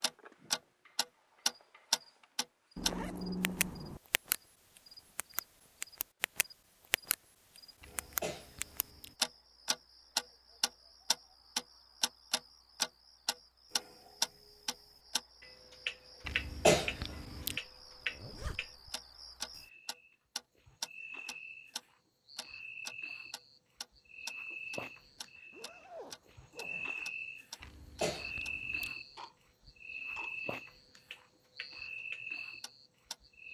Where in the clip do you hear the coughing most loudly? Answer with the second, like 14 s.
17 s.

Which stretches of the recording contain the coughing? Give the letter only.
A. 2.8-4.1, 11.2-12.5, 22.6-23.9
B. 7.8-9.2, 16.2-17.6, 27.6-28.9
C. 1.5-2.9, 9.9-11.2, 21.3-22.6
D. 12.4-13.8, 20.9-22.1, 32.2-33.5
B.